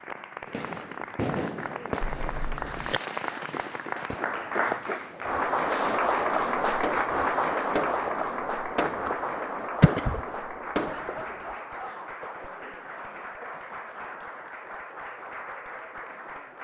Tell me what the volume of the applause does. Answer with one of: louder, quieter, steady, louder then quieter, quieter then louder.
louder then quieter.